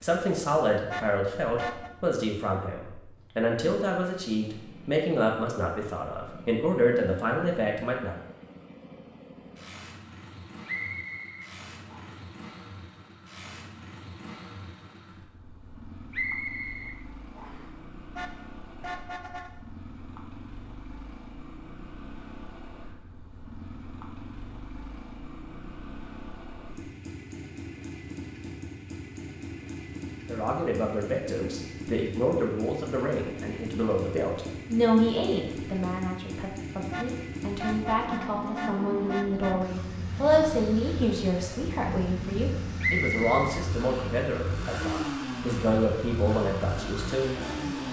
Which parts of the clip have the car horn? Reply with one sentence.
You can hear the car horn from 0.8 to 1.9 s, from 18.1 to 19.5 s and from 36.9 to 39.5 s.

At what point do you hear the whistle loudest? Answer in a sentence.
The volume of the whistle peaks at 43 seconds.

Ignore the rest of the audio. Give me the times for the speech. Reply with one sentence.
The speech can be heard from 0.0 to 8.2 s and from 30.2 to 47.8 s.